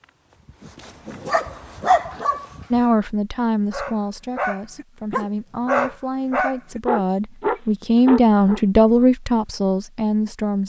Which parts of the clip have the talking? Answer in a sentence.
You can hear the talking from 2.7 to 10.6 s.